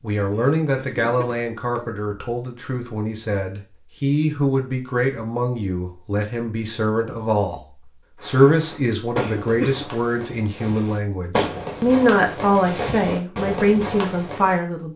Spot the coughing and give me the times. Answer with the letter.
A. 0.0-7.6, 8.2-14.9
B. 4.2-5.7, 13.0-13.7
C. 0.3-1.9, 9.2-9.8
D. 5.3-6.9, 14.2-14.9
C.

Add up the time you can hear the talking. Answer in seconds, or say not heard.
14 s.